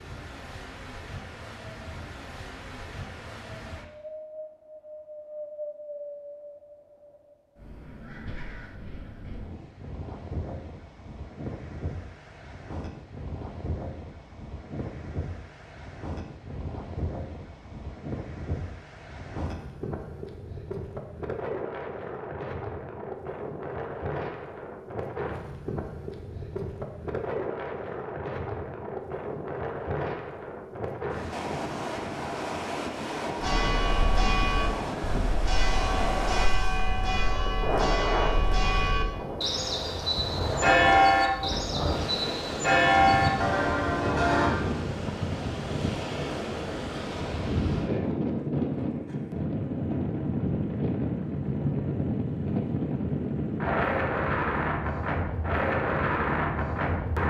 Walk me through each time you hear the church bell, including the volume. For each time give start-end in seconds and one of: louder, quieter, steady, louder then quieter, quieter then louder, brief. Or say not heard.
33.4-44.5 louder.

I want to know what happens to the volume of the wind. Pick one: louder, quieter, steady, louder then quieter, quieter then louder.
louder.